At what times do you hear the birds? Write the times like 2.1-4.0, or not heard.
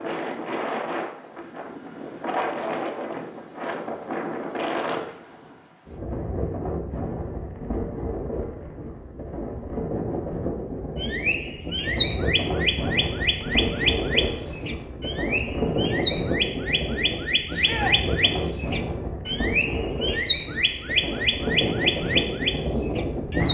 11.0-23.5.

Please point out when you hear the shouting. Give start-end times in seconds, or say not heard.
17.5-17.9.